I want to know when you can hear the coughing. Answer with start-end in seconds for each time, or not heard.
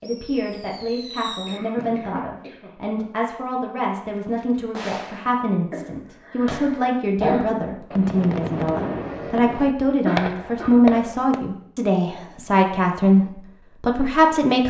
1.4-2.7, 5.7-7.7, 10.1-10.8.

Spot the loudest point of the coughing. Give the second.
7 s.